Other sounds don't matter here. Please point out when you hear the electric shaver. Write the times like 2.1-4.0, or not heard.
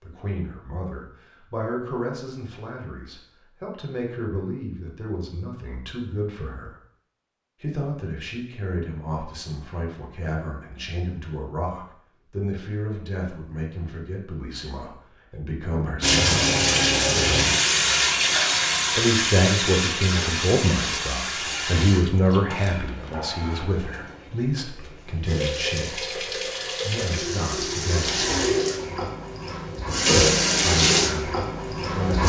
not heard.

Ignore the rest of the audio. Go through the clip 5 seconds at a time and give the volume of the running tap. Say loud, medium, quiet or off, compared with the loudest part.
off, off, off, loud, medium, medium, loud.